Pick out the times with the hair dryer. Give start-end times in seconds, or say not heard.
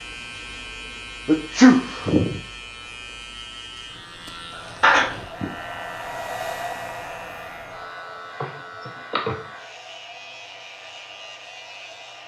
4.5-12.2.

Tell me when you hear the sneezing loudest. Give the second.
2 s.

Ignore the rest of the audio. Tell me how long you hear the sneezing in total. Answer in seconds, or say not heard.
3 s.